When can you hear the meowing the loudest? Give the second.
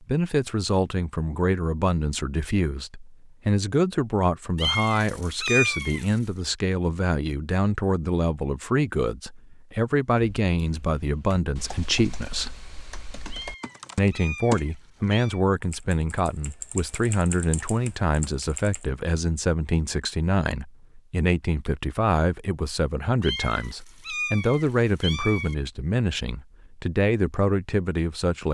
6 s.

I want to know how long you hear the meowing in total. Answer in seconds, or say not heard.
6 s.